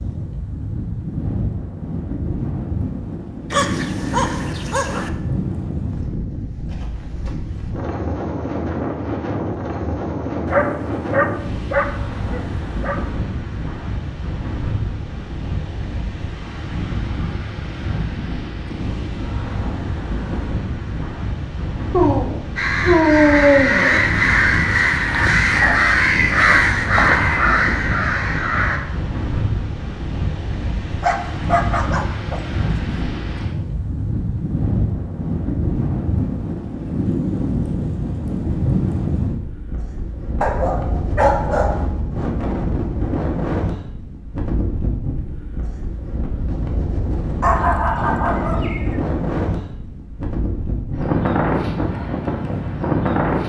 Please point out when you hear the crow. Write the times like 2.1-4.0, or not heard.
22.6-28.8.